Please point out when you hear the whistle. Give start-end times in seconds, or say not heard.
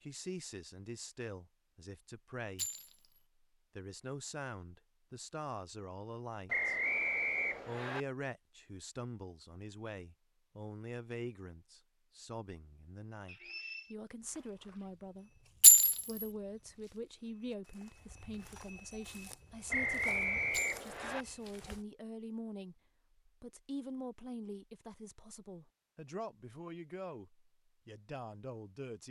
6.5-8.1, 13.2-13.9, 19.7-21.2.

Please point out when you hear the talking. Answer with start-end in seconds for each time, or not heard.
0.0-2.6, 3.8-6.8, 7.7-15.3, 16.1-29.0.